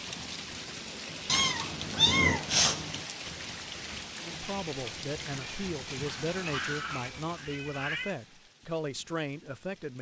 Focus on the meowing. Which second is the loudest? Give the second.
2 s.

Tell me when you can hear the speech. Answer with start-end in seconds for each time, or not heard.
4.2-9.9.